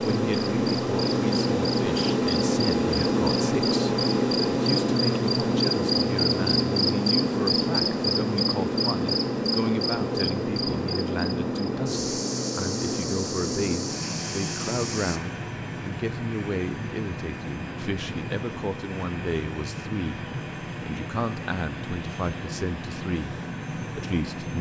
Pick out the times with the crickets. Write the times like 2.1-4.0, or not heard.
0.0-15.2.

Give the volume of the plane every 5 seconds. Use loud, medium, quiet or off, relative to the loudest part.
loud, loud, medium, medium, medium.